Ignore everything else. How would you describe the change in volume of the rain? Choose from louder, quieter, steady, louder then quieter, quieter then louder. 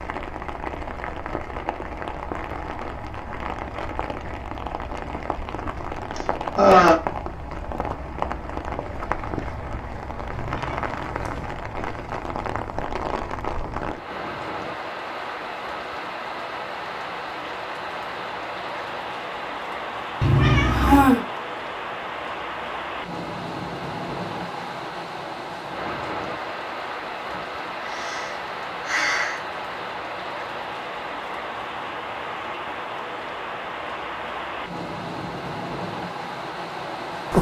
steady.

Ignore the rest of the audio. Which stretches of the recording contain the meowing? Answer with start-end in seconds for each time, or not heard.
10.3-11.6, 20.2-21.1.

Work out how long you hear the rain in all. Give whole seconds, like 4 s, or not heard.
37 s.